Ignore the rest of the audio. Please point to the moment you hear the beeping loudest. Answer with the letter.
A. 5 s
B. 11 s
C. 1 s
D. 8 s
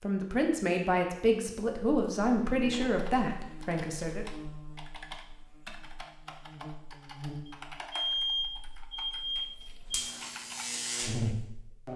D.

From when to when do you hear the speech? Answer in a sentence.
The speech can be heard from 0.0 to 4.2 s.